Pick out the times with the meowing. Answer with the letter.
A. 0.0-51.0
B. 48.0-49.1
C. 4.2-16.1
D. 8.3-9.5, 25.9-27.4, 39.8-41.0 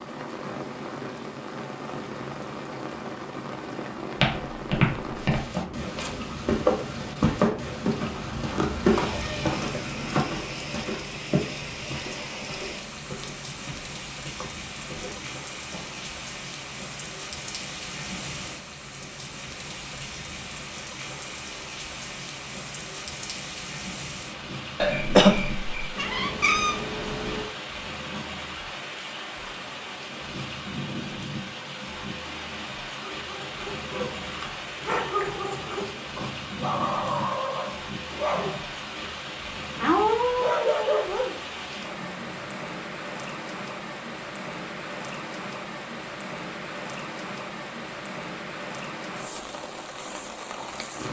D.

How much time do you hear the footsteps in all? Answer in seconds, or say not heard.
12 s.